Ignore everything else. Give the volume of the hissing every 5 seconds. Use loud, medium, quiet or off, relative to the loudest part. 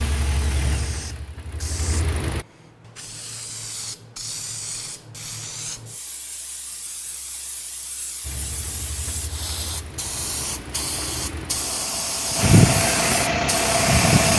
medium, medium, loud.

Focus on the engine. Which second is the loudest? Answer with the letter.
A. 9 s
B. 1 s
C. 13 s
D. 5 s
C.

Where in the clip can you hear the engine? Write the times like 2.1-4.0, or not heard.
0.0-2.5, 8.2-14.3.